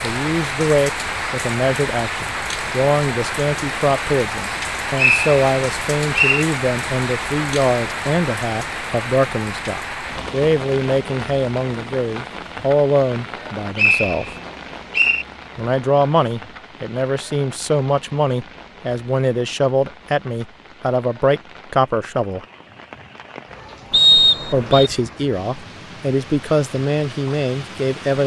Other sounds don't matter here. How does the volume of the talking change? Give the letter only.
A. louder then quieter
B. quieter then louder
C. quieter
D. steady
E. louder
D.